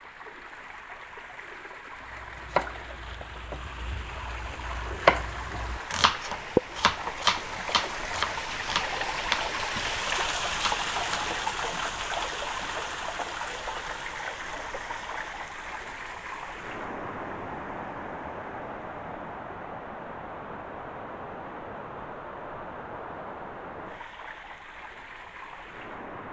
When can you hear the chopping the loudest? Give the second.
5 s.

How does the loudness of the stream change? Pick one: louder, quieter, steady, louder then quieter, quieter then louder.
louder then quieter.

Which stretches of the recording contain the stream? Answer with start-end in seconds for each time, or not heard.
0.0-26.2.